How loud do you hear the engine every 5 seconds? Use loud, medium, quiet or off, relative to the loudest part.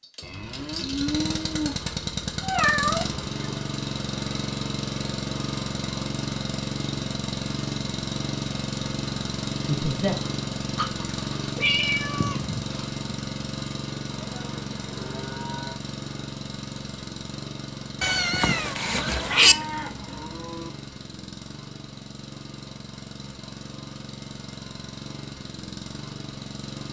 loud, loud, loud, medium, medium, medium.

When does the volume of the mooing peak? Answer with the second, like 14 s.
1 s.